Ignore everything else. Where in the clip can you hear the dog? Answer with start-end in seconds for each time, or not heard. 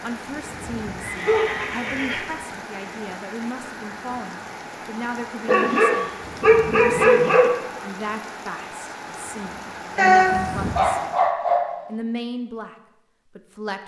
0.4-2.1, 5.5-7.5, 9.9-11.7.